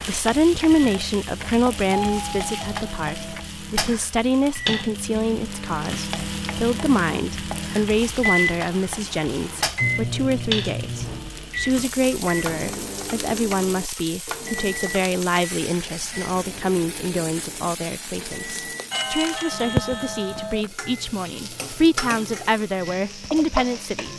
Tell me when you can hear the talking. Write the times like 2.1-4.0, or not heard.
0.1-24.1.